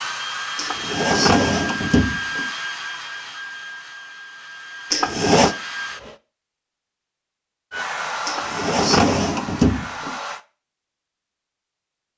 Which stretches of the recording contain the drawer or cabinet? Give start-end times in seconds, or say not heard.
0.6-2.5, 4.9-5.5, 8.2-10.2.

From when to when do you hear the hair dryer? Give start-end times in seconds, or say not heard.
0.0-6.2, 7.7-10.4.